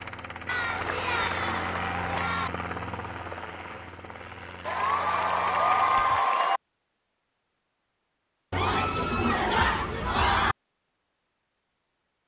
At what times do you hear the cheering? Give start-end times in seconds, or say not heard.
0.5-2.5, 4.7-6.6, 8.5-10.6.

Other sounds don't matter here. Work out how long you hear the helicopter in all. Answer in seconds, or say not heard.
6 s.